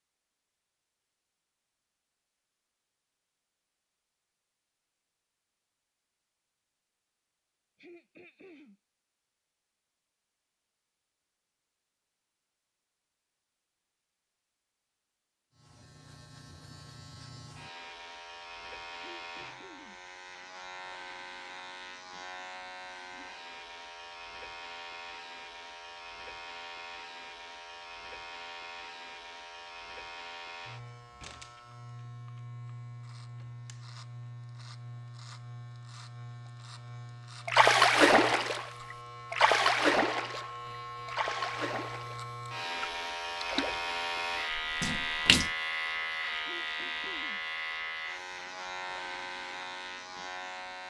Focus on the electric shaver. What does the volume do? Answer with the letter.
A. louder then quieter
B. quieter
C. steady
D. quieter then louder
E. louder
E.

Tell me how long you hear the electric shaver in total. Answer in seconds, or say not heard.
35 s.